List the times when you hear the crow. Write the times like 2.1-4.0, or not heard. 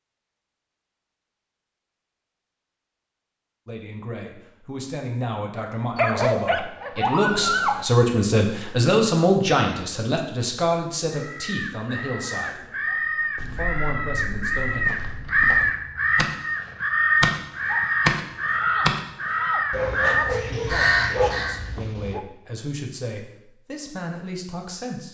11.1-21.6.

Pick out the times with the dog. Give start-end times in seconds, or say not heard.
6.0-7.8, 19.7-22.2.